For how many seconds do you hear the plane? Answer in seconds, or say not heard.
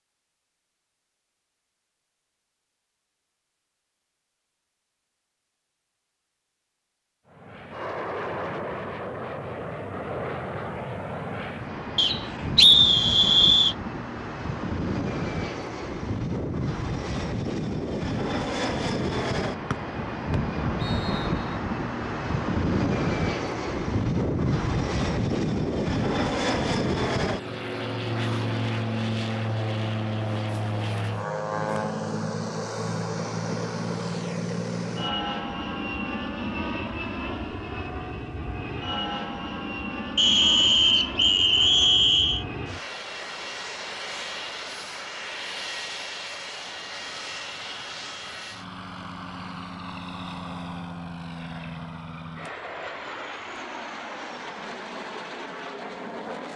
49 s.